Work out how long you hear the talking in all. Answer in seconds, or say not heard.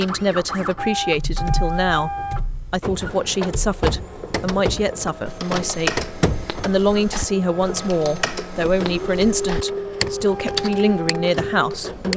11 s.